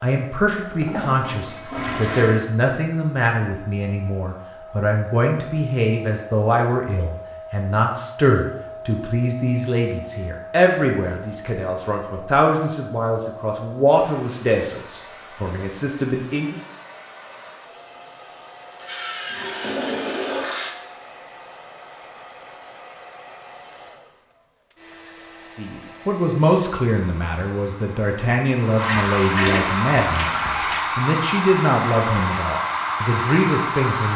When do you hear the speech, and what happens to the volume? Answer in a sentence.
You can hear the speech from 0.0 to 16.6 s, at a steady volume; and from 25.6 to 34.1 s, at a steady volume.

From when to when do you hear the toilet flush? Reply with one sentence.
You can hear the toilet flush from 0.7 to 2.4 s, from 18.7 to 20.7 s and from 28.8 to 30.8 s.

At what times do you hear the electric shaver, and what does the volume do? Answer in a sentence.
The electric shaver can't be heard in this clip.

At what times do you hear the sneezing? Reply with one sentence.
You can't hear the sneezing here.